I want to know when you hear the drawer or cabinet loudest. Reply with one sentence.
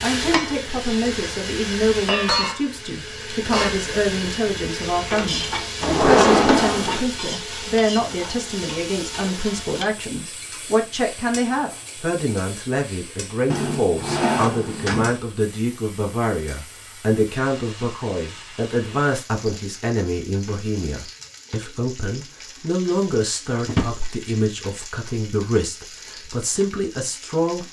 The volume of the drawer or cabinet peaks at 6 seconds.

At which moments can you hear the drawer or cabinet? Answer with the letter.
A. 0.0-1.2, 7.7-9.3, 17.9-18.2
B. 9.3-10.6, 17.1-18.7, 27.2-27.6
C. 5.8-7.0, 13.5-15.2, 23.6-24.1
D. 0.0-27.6
C.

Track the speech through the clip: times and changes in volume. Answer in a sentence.
You can hear the speech from 0.0 to 27.6 s, at a steady volume.